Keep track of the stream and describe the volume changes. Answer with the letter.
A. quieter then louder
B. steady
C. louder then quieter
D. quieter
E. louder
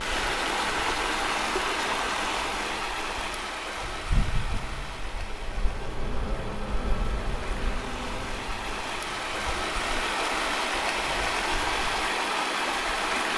A.